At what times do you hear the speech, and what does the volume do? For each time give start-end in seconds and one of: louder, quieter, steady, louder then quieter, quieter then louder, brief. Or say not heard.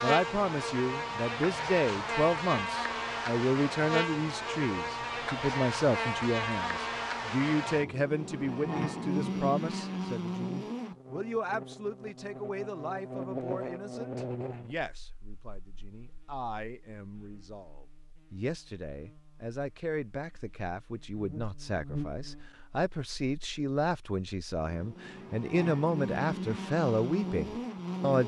0.0-28.2 quieter then louder.